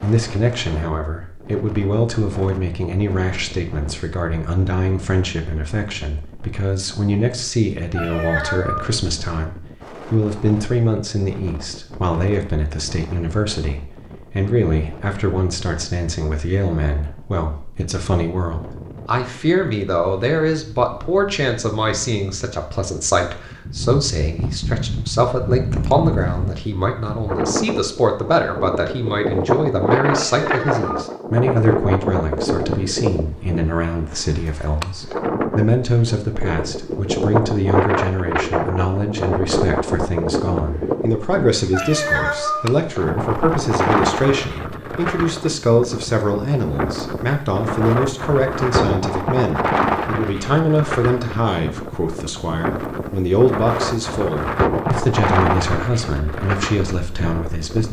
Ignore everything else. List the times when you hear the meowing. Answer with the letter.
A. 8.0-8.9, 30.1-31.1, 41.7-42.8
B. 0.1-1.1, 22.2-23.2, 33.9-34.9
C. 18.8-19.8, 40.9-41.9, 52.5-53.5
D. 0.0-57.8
A.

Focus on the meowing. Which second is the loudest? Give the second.
42 s.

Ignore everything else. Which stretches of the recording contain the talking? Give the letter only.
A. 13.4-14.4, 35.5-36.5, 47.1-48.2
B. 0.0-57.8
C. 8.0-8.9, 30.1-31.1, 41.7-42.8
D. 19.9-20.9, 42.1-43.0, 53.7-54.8
B.